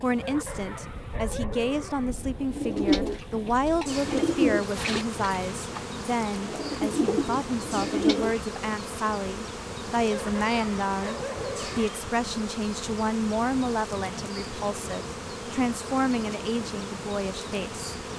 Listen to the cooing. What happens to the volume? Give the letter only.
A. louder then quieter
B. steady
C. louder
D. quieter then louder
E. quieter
D.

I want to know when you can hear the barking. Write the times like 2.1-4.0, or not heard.
0.1-2.1, 10.1-11.9.